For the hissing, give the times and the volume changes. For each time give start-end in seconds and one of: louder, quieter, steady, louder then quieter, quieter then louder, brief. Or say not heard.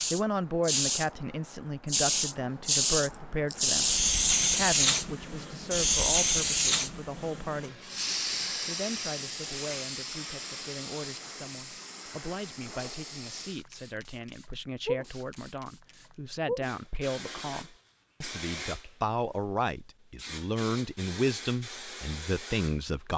0.0-22.9 quieter.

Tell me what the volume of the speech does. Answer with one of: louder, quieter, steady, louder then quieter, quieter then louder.
quieter then louder.